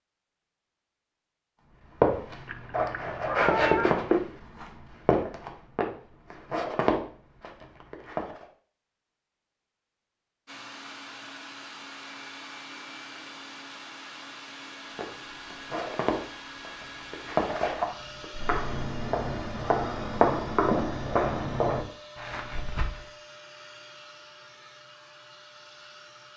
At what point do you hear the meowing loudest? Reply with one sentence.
The loudest moment of the meowing is at 4 seconds.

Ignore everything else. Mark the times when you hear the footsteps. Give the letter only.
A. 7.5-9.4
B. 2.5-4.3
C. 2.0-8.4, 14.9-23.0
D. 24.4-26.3
C.